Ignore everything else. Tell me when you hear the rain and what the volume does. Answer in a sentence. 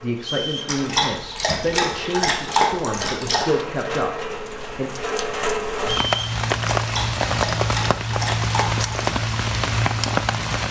You can hear the rain from 0.0 to 10.6 s, getting louder.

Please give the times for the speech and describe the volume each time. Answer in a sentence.
You can hear the speech from 0.0 to 4.9 s, at a steady volume.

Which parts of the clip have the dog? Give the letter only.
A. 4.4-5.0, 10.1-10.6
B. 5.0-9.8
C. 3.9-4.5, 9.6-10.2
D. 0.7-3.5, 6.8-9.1
D.